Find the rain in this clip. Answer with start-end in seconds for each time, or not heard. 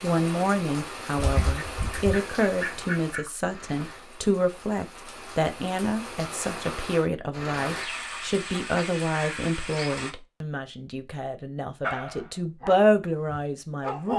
0.0-10.2.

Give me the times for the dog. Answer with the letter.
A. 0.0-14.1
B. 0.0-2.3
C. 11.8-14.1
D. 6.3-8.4
C.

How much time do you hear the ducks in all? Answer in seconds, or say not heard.
2 s.